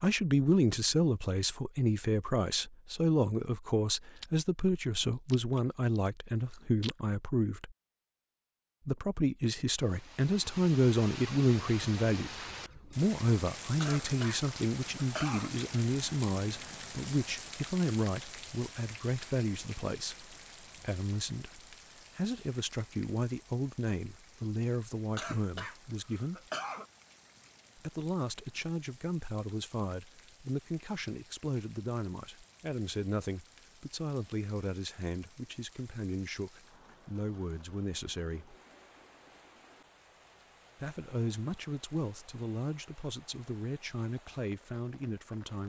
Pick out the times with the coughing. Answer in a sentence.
The coughing can be heard from 13.8 to 15.5 s and from 25.1 to 26.9 s.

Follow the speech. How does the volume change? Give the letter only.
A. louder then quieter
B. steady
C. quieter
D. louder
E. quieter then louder
C.